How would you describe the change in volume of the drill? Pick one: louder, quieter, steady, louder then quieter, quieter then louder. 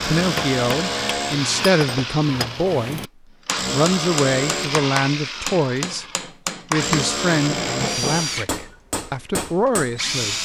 steady.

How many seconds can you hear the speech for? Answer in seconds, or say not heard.
9 s.